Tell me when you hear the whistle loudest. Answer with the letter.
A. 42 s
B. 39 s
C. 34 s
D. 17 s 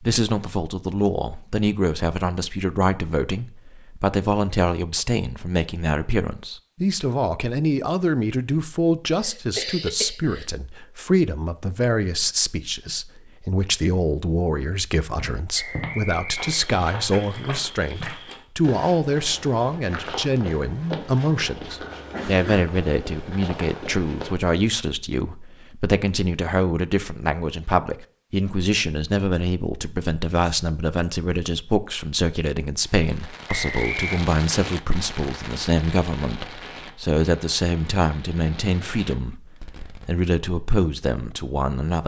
C.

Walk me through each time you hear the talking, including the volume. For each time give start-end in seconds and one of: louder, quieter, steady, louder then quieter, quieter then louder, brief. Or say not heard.
0.0-42.0 steady.